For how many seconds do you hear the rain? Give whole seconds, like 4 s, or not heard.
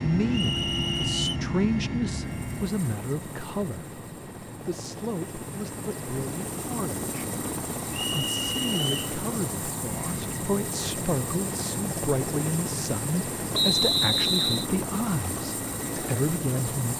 not heard.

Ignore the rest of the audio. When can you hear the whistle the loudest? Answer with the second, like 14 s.
14 s.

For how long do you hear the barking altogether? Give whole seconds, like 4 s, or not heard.
not heard.